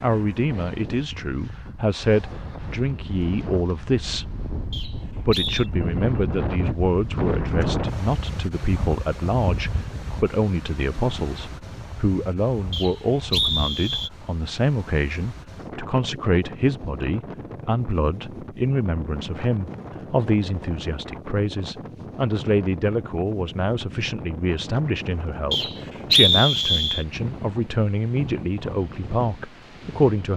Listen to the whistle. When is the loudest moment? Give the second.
26 s.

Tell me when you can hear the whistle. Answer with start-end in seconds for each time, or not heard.
4.7-5.7, 12.7-14.1, 25.5-27.1.